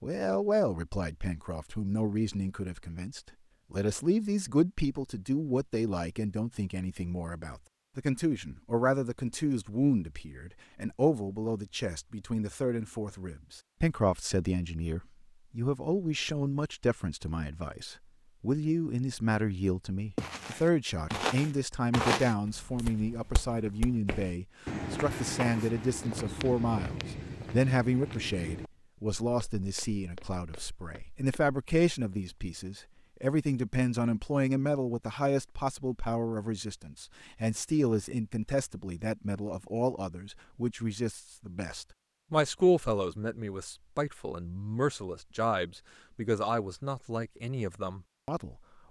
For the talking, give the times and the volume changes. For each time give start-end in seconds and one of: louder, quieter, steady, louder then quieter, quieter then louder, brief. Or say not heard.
0.0-48.8 steady.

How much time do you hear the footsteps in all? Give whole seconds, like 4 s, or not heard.
12 s.